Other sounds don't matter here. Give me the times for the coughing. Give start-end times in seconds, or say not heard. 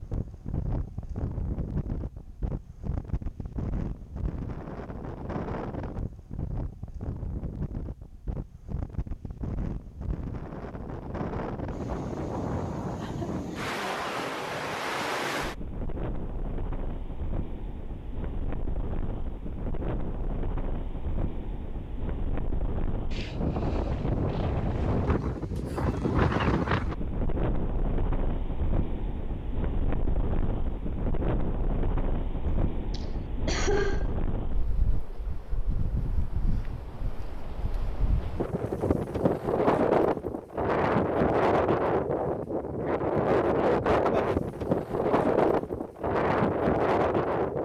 32.5-34.1.